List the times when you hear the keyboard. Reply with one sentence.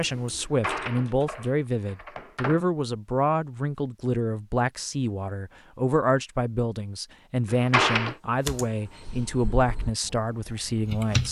The keyboard can be heard from 0.0 to 1.6 s and from 8.4 to 11.2 s.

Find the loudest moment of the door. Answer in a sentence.
The volume of the door peaks at 8 seconds.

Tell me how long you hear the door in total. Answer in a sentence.
The door can be heard for 3 seconds in total.